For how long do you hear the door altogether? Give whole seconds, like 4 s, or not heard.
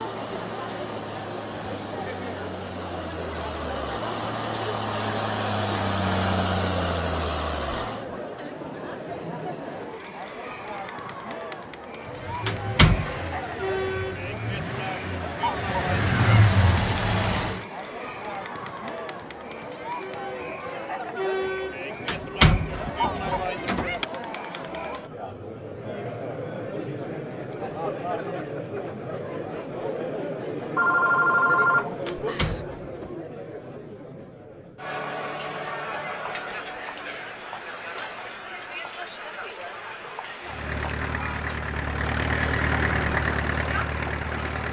4 s.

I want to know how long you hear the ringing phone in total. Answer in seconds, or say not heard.
2 s.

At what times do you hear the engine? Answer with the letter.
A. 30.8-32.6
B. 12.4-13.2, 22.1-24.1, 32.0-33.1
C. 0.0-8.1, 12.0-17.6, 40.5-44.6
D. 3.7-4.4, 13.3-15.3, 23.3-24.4
C.